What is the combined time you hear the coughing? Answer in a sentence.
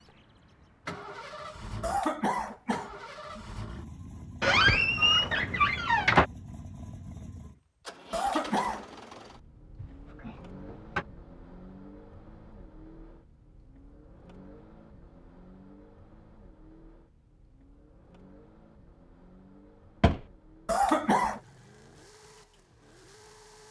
You can hear the coughing for 3 seconds altogether.